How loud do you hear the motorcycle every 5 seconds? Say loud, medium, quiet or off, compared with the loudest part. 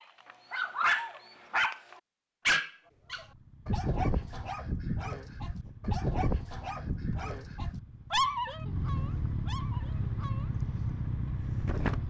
quiet, medium, loud.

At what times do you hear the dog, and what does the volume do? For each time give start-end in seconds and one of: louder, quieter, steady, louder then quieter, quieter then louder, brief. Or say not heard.
0.2-10.5 quieter.